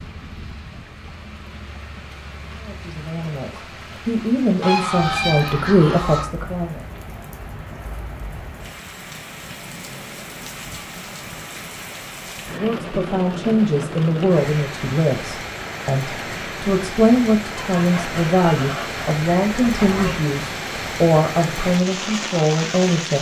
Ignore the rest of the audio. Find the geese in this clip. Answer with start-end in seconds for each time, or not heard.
4.6-6.2, 17.6-20.2.